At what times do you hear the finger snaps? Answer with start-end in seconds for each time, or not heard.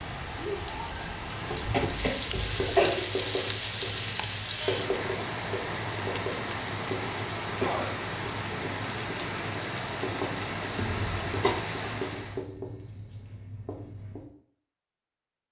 not heard.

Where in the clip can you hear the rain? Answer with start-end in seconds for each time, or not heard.
0.0-12.4.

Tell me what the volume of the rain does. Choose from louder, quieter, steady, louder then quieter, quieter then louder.
steady.